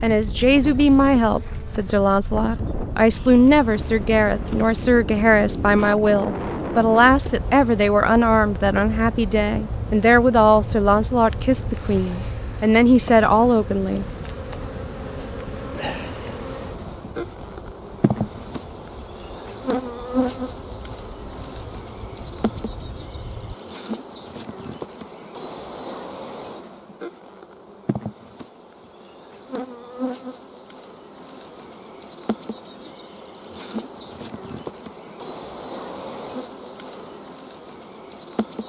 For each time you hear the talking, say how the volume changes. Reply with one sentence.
You can hear the talking from 0.0 to 14.1 s, at a steady volume.